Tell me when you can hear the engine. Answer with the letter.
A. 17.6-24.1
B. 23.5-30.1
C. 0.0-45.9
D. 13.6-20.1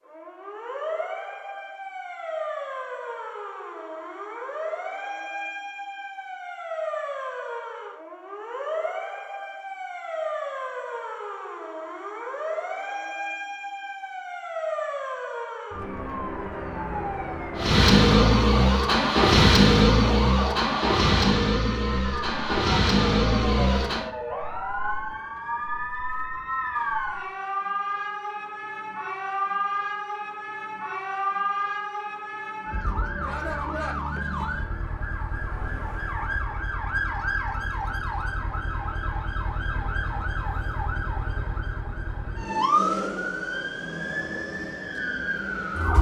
A.